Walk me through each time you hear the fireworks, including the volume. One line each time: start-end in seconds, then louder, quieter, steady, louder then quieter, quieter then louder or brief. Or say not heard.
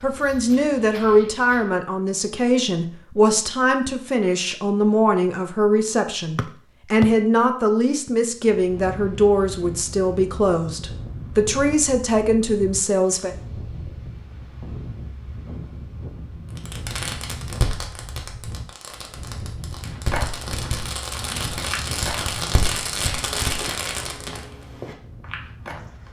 16.6-24.4 quieter then louder.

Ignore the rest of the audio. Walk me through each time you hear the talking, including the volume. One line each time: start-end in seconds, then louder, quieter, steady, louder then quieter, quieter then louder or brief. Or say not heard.
0.0-13.3 steady.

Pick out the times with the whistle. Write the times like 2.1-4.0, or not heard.
6.3-7.0.